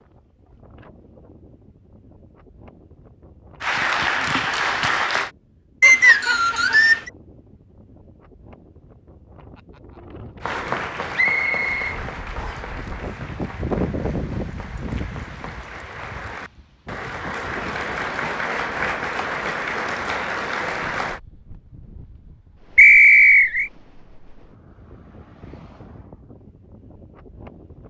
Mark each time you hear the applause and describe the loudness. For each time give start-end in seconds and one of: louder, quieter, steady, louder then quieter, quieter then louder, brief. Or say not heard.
3.6-5.3 brief
10.4-21.2 quieter then louder.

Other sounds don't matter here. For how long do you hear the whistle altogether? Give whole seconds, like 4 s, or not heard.
4 s.